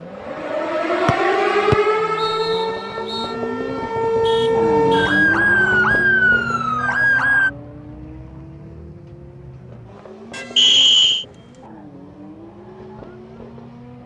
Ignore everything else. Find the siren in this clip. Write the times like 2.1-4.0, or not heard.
0.0-7.5.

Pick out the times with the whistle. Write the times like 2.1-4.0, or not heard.
1.1-3.3, 10.6-11.2.